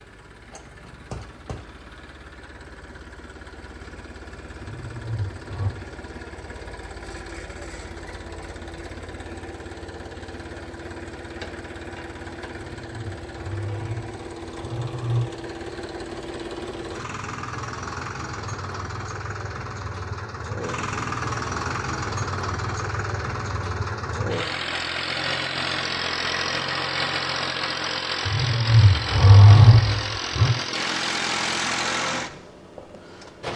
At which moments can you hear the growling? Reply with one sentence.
You can hear the growling from 4.6 to 5.7 s, from 12.5 to 15.2 s and from 28.2 to 30.6 s.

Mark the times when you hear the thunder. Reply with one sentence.
The thunder can't be heard in this clip.